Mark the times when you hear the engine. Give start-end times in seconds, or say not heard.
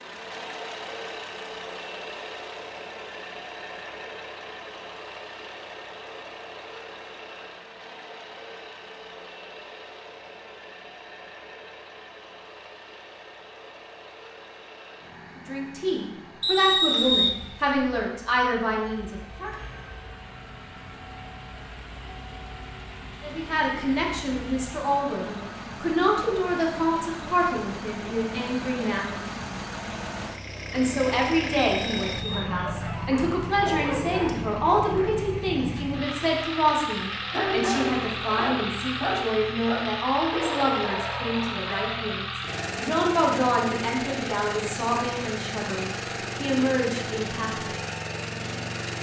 0.0-48.9.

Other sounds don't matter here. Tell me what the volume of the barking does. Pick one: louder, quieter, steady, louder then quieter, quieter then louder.
louder then quieter.